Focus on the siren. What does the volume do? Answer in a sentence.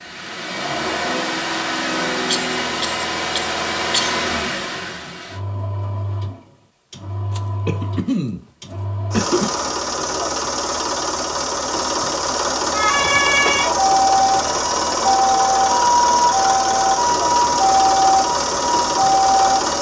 The volume of the siren stays about the same.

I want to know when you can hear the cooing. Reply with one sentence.
The cooing can't be heard in this clip.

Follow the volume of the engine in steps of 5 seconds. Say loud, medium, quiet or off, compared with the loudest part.
loud, medium, loud, loud.